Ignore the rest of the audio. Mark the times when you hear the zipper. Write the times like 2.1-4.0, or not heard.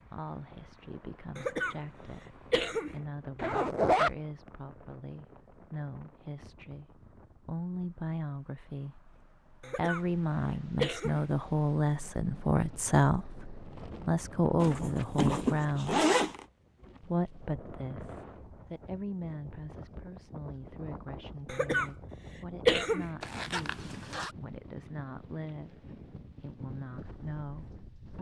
3.4-4.2, 14.6-16.4, 23.2-24.3.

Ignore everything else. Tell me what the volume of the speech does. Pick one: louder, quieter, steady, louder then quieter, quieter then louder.
louder then quieter.